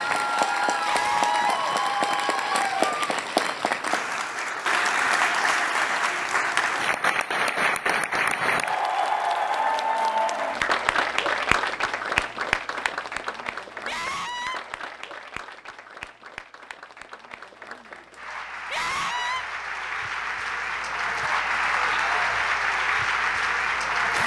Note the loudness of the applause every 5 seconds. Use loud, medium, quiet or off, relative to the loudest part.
loud, loud, loud, quiet, loud.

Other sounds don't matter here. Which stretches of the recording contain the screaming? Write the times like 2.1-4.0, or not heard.
0.8-1.6, 13.8-14.6, 18.7-19.4.